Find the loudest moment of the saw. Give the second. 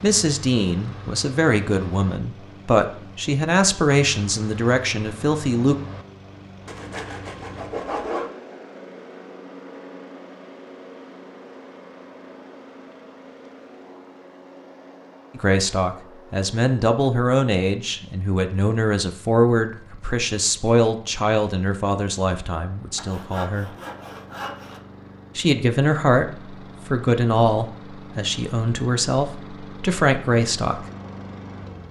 8 s.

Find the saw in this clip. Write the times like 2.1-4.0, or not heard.
6.7-8.3, 22.9-24.8.